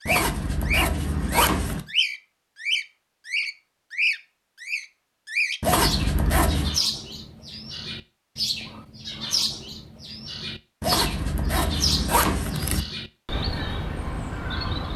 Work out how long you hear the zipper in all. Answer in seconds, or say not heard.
5 s.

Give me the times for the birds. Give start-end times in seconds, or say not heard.
0.0-14.9.